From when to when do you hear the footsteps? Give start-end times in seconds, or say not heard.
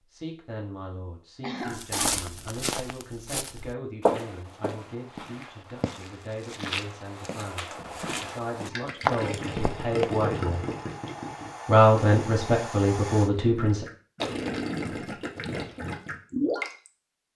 1.6-10.2.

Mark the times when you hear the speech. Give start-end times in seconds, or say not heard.
0.1-10.7, 11.7-13.8.